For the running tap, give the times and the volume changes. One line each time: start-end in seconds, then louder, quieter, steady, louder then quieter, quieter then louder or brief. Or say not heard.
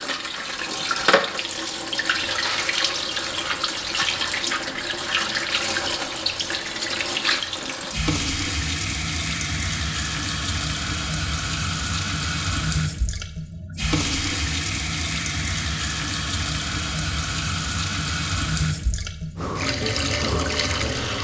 0.0-21.1 steady.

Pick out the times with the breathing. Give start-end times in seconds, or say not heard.
19.4-21.1.